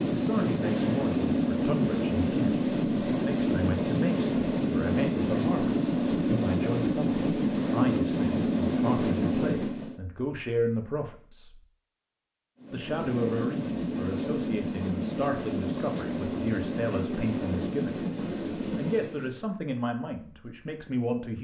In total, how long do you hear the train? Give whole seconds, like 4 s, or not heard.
17 s.